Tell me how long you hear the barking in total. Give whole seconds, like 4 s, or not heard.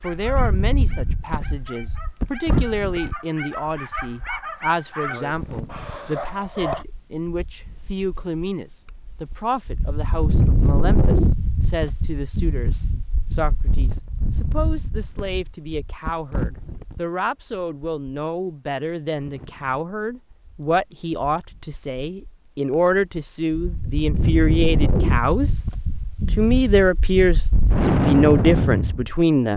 7 s.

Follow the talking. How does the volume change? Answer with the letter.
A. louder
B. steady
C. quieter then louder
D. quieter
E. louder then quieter
A.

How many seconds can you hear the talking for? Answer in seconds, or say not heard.
29 s.